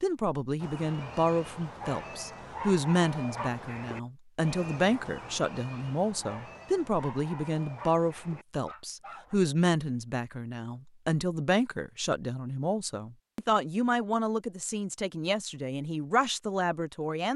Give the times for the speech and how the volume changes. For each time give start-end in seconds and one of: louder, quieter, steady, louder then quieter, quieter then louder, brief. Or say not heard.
0.0-17.3 steady.